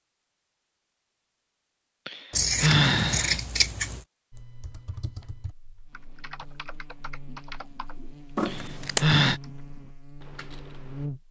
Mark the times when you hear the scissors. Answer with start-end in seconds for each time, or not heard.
2.3-4.0, 8.3-9.1.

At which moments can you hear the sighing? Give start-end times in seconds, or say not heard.
2.0-3.4, 8.4-9.4.